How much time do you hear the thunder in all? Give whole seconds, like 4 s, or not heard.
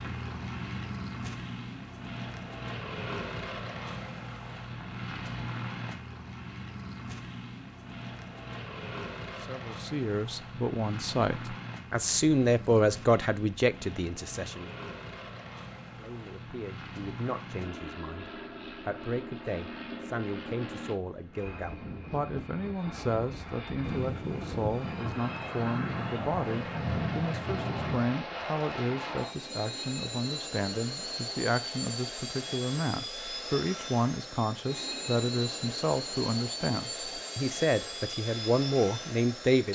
4 s.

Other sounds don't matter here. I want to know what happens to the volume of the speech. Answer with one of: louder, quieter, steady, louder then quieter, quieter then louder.
quieter then louder.